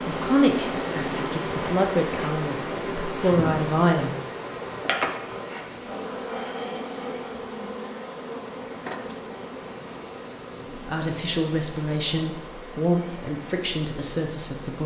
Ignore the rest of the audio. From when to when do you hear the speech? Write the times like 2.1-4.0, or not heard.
0.1-4.1, 10.8-14.8.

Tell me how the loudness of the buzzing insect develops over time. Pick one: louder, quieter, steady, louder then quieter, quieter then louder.
quieter.